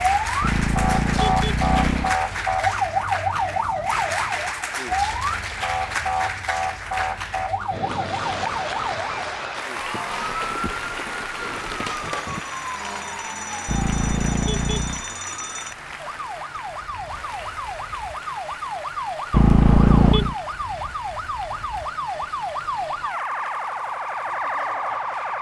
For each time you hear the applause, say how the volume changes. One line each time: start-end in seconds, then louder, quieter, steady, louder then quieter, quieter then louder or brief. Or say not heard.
0.0-25.3 quieter.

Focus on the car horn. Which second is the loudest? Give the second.
20 s.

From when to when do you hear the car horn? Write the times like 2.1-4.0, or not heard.
0.4-2.1, 13.7-15.0, 19.3-20.4.